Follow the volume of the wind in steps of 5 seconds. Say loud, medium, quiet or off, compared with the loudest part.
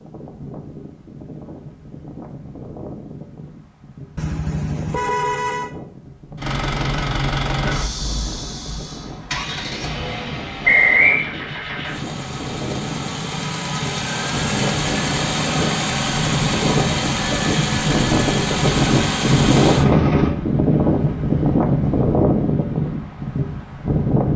quiet, quiet, medium, loud, loud.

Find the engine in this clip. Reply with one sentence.
You can hear the engine from 6.3 to 20.4 s.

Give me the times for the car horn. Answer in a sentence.
You can hear the car horn from 4.2 to 5.7 s.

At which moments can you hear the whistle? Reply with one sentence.
The whistle can be heard from 10.7 to 11.2 s.